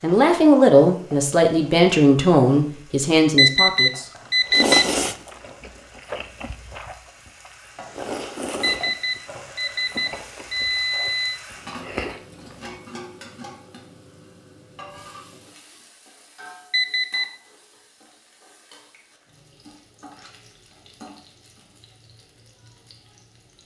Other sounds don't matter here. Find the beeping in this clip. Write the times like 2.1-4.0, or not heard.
3.4-4.8, 8.6-11.4, 16.7-17.3.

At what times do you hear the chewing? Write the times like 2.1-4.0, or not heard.
4.2-12.8.